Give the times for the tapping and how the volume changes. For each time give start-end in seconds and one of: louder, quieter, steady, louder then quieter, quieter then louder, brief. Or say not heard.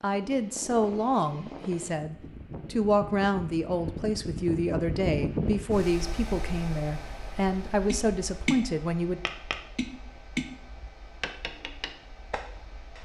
7.9-12.9 quieter.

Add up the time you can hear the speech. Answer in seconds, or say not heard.
9 s.